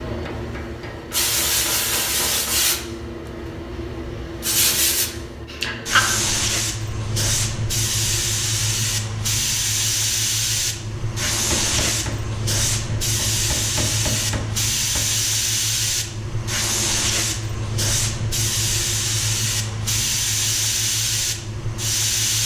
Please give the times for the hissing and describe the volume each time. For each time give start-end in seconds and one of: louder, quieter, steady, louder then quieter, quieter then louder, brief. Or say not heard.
0.0-22.4 steady.